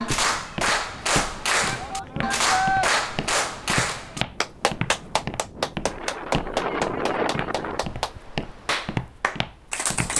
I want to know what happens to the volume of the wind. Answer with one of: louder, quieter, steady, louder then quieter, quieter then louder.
louder then quieter.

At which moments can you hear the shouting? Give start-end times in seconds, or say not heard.
1.6-2.9.